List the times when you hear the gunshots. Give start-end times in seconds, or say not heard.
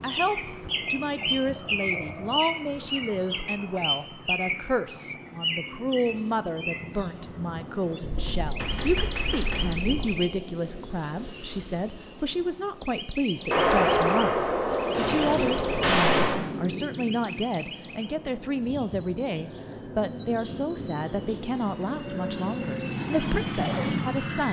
8.0-10.1, 13.5-16.4.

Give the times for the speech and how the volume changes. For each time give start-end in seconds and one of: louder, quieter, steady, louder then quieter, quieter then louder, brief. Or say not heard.
0.0-24.4 steady.